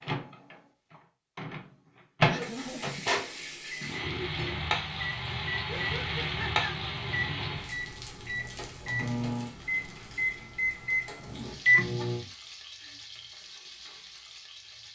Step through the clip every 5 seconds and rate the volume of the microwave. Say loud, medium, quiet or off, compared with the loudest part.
loud, medium, loud.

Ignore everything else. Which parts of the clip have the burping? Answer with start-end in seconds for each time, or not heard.
3.8-4.4.